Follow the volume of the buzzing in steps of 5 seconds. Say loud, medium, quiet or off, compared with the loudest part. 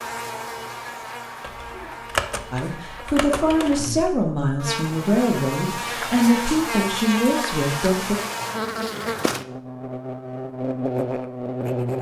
medium, loud, loud.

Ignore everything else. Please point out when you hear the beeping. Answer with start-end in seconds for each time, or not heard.
not heard.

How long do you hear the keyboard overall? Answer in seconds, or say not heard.
3 s.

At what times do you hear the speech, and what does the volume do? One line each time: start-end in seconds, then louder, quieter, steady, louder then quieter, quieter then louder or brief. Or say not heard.
2.5-8.2 steady.